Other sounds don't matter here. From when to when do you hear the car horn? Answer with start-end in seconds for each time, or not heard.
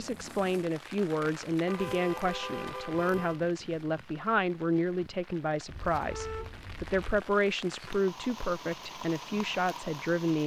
1.6-3.4, 5.7-7.1.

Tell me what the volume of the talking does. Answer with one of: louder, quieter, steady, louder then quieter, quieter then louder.
steady.